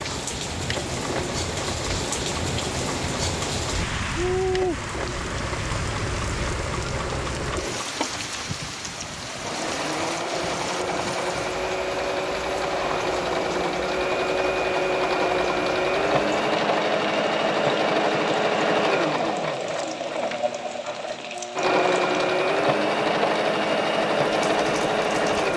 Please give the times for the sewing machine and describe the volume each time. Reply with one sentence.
The sewing machine can be heard from 0.0 to 25.5 s, getting louder.